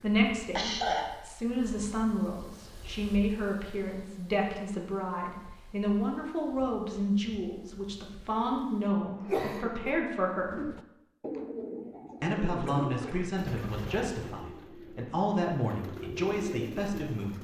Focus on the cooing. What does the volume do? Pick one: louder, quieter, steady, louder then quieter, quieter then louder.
quieter then louder.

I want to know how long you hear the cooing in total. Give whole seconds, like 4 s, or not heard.
7 s.